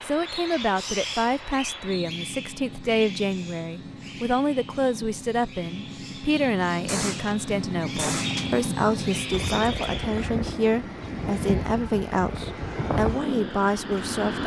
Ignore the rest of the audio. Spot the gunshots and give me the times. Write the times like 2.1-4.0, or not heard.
6.8-8.4.